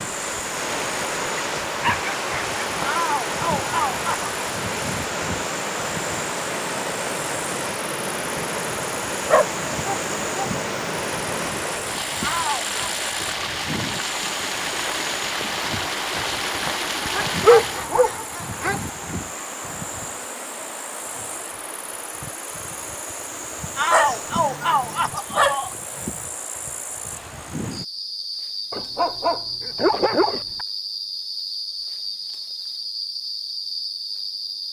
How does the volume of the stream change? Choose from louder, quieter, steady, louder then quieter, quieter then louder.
steady.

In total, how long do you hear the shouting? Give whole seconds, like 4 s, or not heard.
4 s.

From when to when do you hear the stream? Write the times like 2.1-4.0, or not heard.
0.0-17.9.